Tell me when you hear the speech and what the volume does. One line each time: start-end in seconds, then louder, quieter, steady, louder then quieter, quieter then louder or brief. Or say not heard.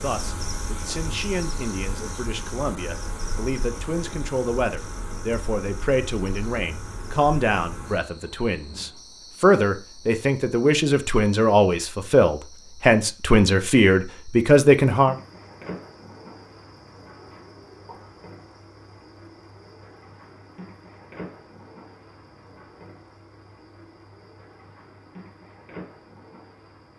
0.0-15.2 louder.